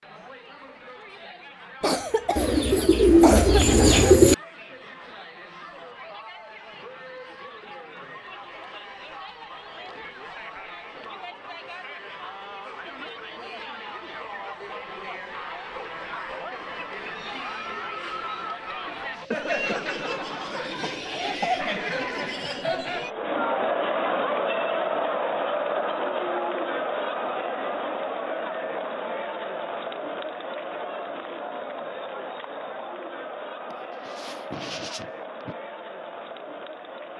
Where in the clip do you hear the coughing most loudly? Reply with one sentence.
The volume of the coughing peaks at 3 seconds.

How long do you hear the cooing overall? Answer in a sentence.
You can hear the cooing for 2 seconds altogether.